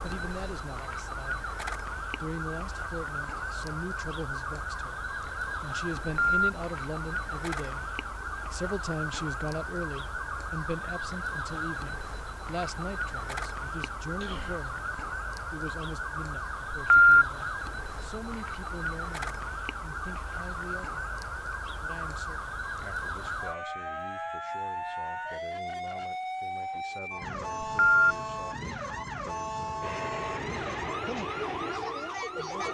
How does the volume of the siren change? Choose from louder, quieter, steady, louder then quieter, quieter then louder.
steady.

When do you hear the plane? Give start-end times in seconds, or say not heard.
29.8-32.6.